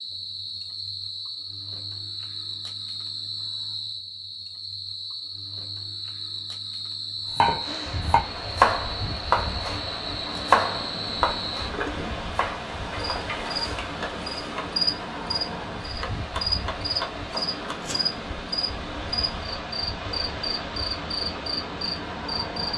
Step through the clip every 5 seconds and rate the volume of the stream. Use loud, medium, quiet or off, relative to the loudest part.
off, loud, loud, loud, loud.